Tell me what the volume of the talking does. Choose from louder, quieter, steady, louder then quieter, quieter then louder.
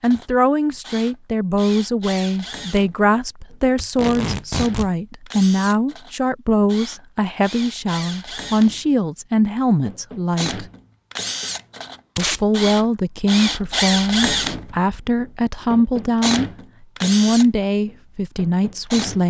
steady.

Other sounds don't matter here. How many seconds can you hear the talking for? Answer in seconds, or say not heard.
18 s.